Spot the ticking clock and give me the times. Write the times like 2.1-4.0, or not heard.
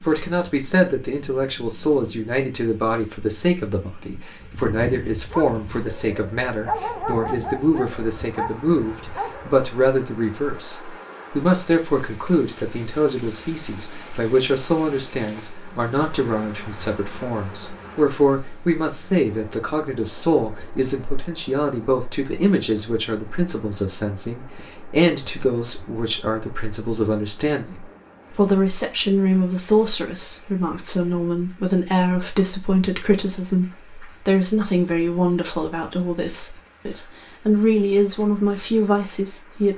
not heard.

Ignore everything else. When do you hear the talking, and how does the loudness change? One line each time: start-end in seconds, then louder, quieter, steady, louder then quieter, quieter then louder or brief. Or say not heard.
0.0-39.7 steady.